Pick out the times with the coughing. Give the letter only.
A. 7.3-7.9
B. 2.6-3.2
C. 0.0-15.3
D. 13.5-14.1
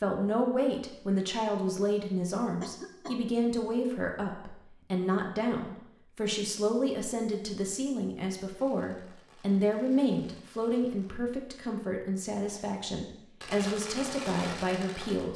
B.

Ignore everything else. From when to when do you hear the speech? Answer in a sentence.
You can hear the speech from 0.0 to 15.3 s.